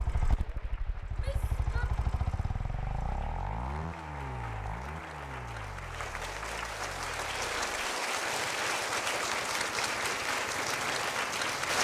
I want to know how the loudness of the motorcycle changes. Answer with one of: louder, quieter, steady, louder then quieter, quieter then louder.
quieter.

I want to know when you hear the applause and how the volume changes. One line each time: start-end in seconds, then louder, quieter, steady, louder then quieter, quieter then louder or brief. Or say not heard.
0.1-11.7 louder.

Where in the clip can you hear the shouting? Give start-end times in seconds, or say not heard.
1.1-2.0.